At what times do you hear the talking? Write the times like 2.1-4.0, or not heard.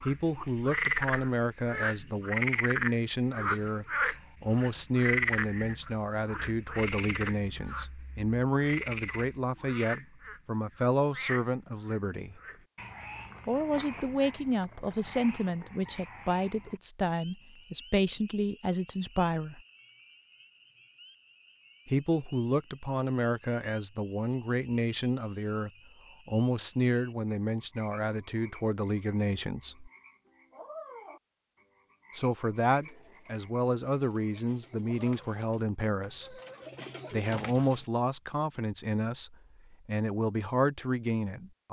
0.0-12.3, 13.4-19.6, 21.9-29.9, 32.1-36.4, 37.1-41.6.